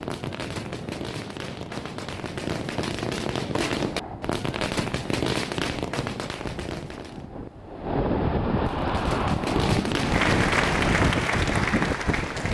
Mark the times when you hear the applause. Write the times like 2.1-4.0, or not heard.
9.9-12.4.